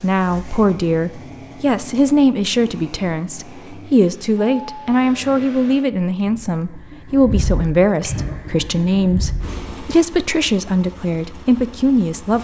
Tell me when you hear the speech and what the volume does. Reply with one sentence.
The speech can be heard from 0.0 to 12.3 s, at a steady volume.